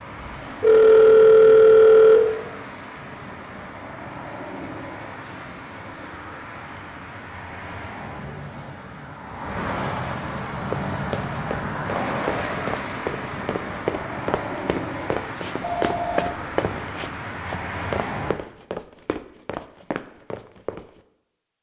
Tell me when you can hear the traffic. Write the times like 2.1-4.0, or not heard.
0.0-18.4.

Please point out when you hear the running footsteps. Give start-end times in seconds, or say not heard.
10.6-21.0.